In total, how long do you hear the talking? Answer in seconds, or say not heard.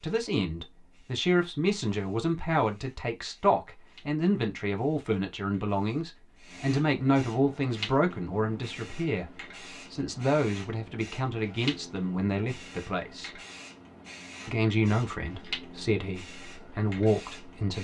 17 s.